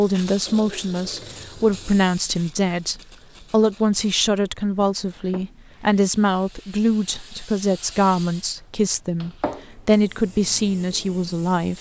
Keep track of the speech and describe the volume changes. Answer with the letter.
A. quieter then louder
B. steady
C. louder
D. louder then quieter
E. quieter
B.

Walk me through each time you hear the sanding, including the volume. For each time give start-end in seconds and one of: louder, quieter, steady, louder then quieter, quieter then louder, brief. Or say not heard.
not heard.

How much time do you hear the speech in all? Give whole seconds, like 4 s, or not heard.
12 s.